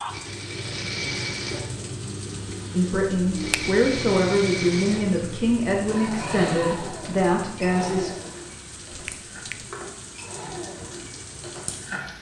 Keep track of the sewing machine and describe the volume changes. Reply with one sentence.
The loudness of the sewing machine goes down.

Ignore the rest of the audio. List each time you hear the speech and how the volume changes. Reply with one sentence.
The speech can be heard from 2.7 to 8.1 s, at a steady volume.